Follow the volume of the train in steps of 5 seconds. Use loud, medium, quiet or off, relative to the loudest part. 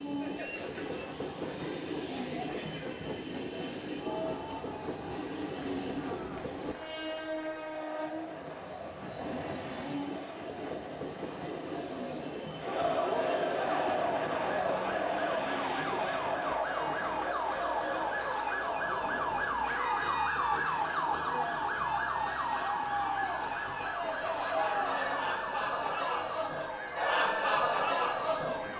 loud, loud, loud, medium, medium, medium.